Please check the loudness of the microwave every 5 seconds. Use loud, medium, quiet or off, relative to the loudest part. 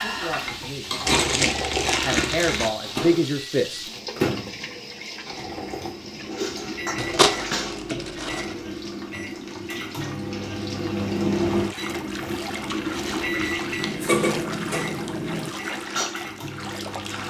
loud, medium, loud, medium.